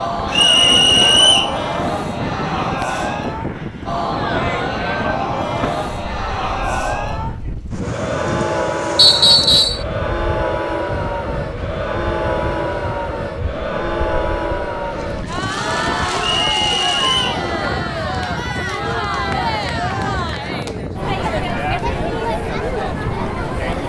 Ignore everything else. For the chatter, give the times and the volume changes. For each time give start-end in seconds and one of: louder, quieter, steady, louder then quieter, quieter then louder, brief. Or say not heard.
0.0-23.8 steady.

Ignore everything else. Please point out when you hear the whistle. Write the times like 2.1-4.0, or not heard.
0.3-1.6, 8.9-9.8, 16.2-17.4.